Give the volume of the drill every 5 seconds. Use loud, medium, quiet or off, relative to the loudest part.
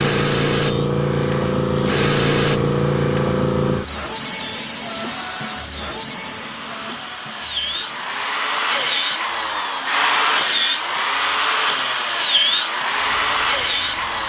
quiet, medium, loud.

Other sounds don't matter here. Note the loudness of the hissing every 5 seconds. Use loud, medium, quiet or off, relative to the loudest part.
loud, quiet, quiet.